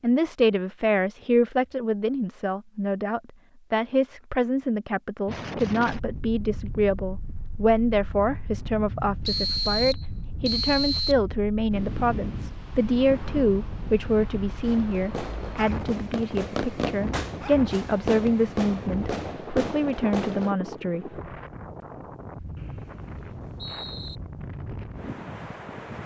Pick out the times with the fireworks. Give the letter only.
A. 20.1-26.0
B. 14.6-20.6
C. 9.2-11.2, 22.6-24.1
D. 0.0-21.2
B.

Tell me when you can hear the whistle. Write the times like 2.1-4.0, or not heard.
9.2-11.2, 22.6-24.1.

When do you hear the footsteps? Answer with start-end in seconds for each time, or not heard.
not heard.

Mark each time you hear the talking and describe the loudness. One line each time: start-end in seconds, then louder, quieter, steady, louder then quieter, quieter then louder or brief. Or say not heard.
0.0-21.2 steady.